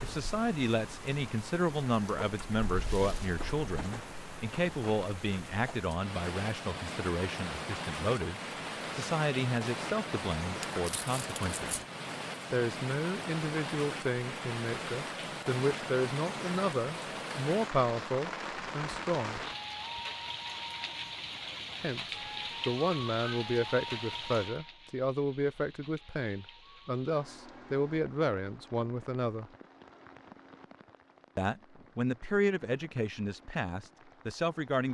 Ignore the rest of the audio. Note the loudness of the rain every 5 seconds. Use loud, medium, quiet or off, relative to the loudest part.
medium, loud, loud, loud, loud, quiet, quiet.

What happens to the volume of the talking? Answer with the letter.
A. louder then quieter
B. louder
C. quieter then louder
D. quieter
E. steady
E.